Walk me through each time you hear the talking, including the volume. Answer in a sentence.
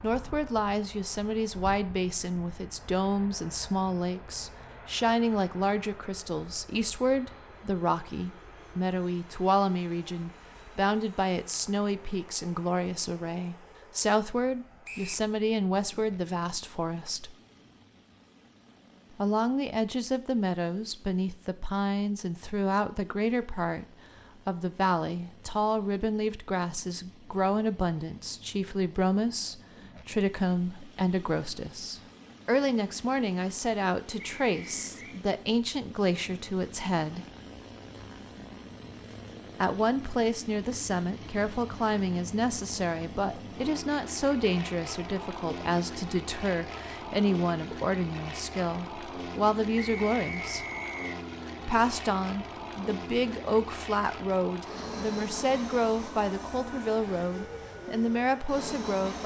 You can hear the talking from 0.0 to 17.4 s, at a steady volume; from 19.1 to 23.9 s, at a steady volume; from 24.4 to 37.2 s, at a steady volume; from 39.6 to 50.6 s, at a steady volume; and from 51.6 to 59.2 s, at a steady volume.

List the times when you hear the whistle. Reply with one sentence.
You can hear the whistle from 14.8 to 15.2 s, from 34.1 to 35.2 s and from 49.8 to 51.1 s.